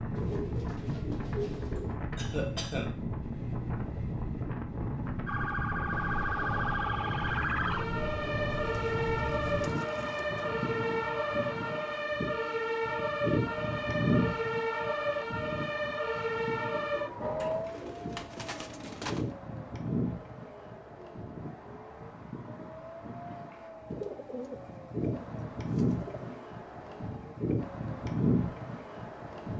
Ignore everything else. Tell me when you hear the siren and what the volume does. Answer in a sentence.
You can hear the siren from 5.2 to 29.5 s, getting quieter.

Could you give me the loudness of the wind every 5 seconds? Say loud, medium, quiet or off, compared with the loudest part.
loud, loud, loud, medium, medium, loud.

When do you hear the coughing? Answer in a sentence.
You can hear the coughing from 2.1 to 2.9 s.